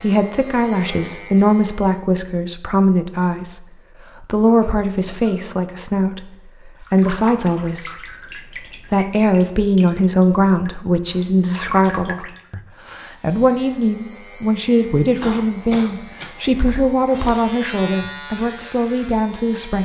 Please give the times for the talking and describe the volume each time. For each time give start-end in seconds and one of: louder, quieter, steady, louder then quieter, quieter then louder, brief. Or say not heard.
0.0-19.8 steady.